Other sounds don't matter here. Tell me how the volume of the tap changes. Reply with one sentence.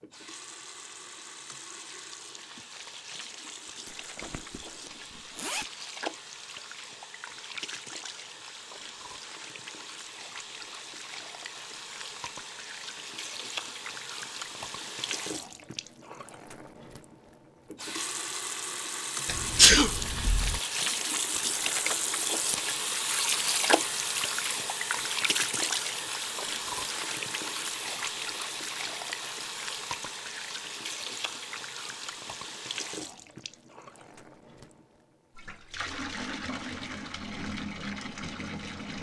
The loudness of the tap goes up, then down.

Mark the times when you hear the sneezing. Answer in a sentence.
You can hear the sneezing from 19.2 to 20.6 s.